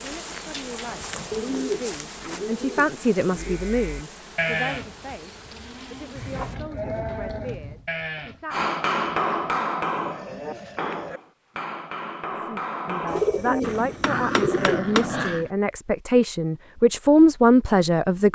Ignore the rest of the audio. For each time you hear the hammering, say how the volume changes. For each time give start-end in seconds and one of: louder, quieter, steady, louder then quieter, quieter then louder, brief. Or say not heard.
8.5-15.2 quieter.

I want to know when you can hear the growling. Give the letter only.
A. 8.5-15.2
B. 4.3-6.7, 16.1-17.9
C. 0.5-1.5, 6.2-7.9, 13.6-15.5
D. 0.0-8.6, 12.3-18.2
C.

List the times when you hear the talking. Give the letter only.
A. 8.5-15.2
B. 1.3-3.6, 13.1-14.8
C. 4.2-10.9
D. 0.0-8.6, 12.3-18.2
D.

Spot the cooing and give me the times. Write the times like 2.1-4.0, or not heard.
1.3-3.6, 13.1-14.8.